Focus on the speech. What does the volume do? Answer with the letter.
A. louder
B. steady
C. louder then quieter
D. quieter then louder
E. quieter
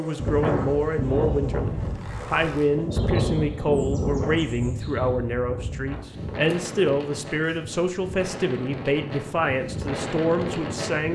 B.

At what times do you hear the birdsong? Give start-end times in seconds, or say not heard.
not heard.